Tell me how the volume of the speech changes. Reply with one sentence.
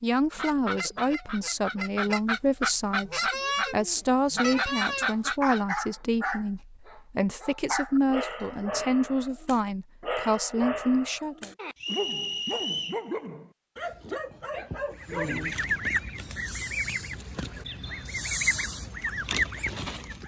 The volume of the speech stays about the same.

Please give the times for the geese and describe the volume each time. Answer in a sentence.
You can hear the geese from 0.3 to 5.6 s, getting louder; and from 14.9 to 20.2 s, getting quieter then louder.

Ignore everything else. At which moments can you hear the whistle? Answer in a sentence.
The whistle can be heard from 11.8 to 13.0 s.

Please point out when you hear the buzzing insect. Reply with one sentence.
The buzzing insect can't be heard in this clip.